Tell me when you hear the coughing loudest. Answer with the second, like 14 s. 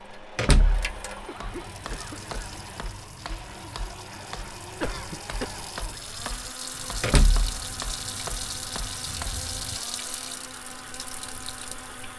5 s.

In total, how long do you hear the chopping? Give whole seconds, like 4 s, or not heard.
8 s.